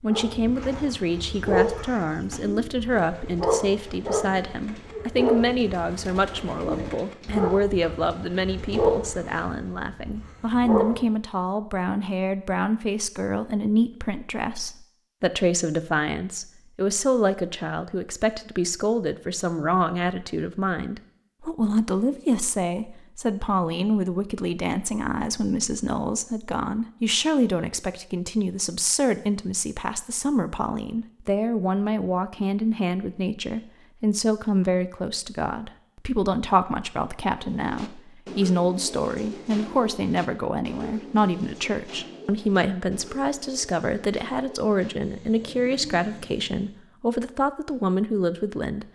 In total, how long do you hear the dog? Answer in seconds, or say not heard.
11 s.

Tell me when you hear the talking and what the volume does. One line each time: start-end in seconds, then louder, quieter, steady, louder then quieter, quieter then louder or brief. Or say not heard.
0.0-48.8 steady.